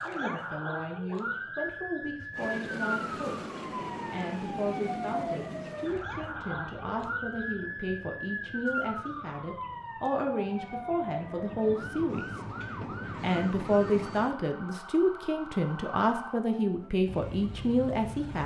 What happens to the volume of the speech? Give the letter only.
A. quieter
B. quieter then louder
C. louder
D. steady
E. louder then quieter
C.